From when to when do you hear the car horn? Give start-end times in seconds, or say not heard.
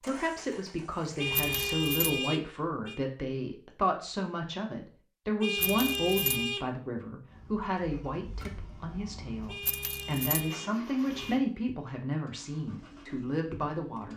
1.1-3.0, 5.4-6.7, 9.4-11.4.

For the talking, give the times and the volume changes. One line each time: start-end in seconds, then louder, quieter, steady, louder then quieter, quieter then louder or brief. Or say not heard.
0.0-14.1 steady.